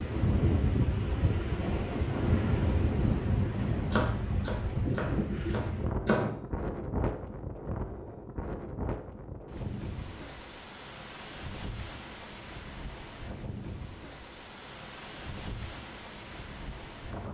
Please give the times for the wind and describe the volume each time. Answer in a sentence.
You can hear the wind from 0.0 to 17.2 s, getting quieter.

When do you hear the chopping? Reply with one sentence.
You can hear the chopping from 3.6 to 6.3 s.